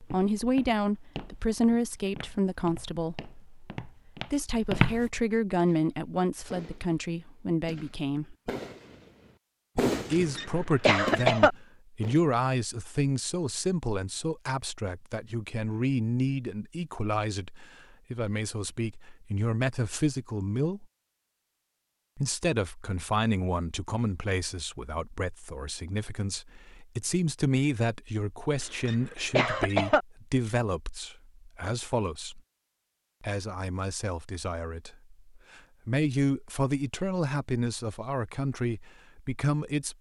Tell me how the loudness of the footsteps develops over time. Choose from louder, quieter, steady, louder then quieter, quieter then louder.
quieter then louder.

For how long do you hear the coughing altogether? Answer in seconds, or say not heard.
3 s.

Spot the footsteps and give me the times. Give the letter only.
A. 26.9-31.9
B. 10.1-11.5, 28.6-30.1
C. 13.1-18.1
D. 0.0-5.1
D.